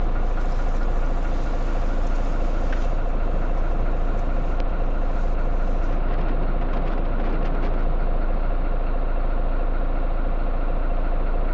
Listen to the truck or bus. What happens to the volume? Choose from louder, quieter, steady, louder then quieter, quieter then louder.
steady.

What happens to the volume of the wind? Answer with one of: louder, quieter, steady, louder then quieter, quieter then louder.
louder.